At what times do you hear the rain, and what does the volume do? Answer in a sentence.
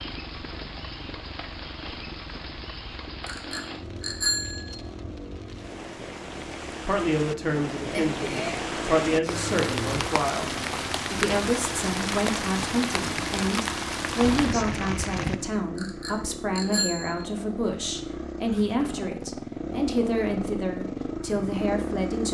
The rain can be heard from 0.0 to 15.6 s, getting louder.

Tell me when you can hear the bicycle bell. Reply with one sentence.
You can hear the bicycle bell from 3.2 to 4.8 s, from 7.9 to 8.7 s and from 15.8 to 17.2 s.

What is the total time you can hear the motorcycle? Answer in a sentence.
The motorcycle can be heard for 22 seconds in total.